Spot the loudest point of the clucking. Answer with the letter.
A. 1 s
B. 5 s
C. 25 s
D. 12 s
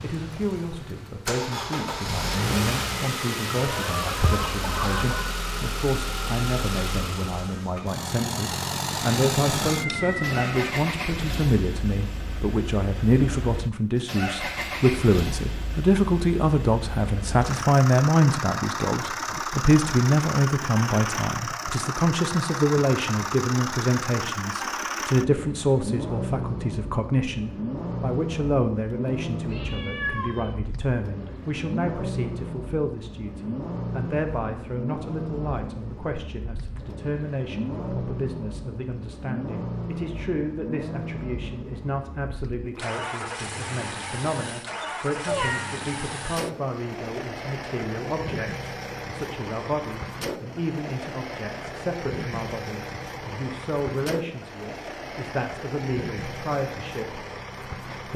B.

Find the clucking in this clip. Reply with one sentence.
You can hear the clucking from 3.5 to 5.2 s.